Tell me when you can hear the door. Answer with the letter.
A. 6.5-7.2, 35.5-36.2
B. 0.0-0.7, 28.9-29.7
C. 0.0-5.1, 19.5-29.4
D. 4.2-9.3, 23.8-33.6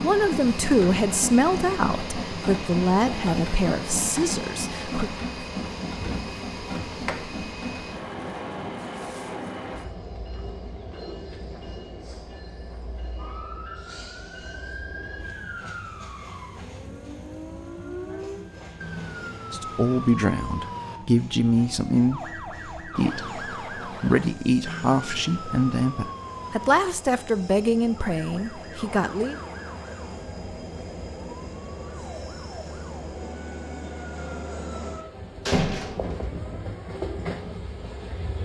A.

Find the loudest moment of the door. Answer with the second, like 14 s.
36 s.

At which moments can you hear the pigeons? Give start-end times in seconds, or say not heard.
not heard.